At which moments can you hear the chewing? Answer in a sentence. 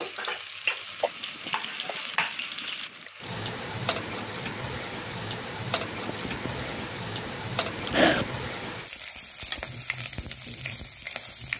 The chewing can be heard from 1.0 to 3.1 s and from 6.0 to 8.3 s.